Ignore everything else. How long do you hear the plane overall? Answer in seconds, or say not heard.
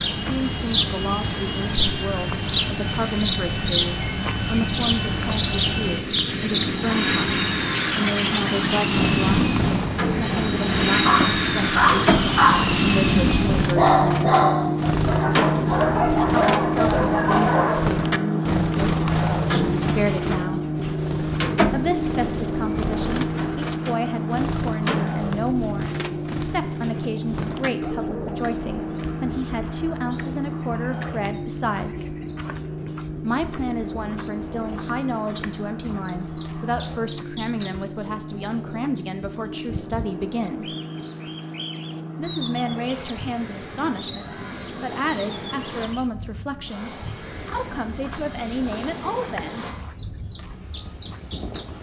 52 s.